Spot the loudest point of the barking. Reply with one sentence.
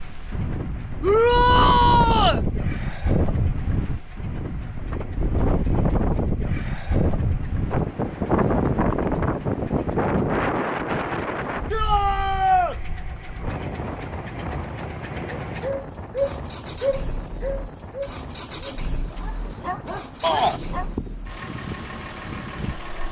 The loudest moment of the barking is at 16 seconds.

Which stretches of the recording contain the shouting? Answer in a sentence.
The shouting can be heard from 1.0 to 2.4 s, from 11.7 to 12.8 s and from 20.2 to 20.6 s.